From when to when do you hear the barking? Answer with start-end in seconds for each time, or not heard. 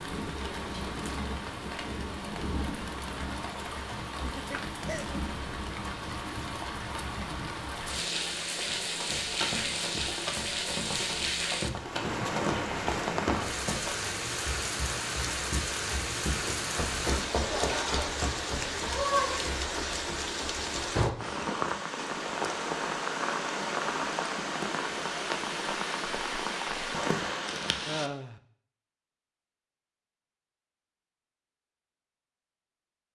not heard.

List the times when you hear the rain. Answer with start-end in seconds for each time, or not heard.
0.0-28.1.